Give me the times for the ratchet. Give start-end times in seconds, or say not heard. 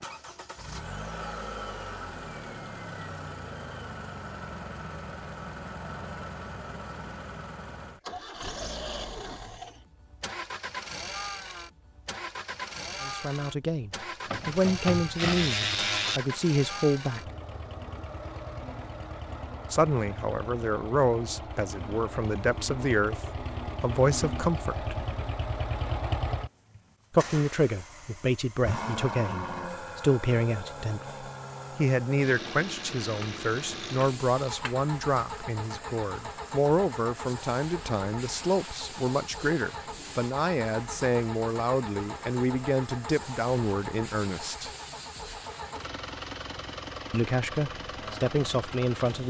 14.2-16.2, 33.2-34.8.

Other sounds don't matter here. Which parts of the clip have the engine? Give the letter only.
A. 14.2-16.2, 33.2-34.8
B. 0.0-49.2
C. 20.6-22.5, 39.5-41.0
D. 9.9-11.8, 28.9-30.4
B.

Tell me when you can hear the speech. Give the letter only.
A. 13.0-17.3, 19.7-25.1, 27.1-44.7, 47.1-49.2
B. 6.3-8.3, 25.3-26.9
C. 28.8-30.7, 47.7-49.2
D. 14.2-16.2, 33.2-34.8
A.